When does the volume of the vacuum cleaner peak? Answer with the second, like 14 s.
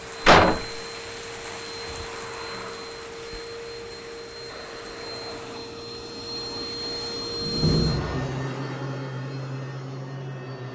8 s.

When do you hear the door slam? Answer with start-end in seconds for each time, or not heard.
0.2-0.7, 7.3-8.3.